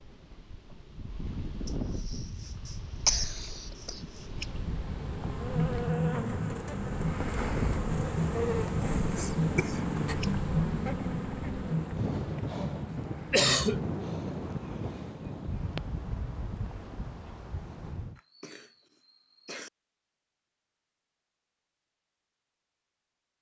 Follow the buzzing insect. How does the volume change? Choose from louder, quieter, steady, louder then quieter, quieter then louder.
quieter.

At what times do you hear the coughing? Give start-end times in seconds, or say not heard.
1.6-4.0, 13.3-13.8, 18.1-19.7.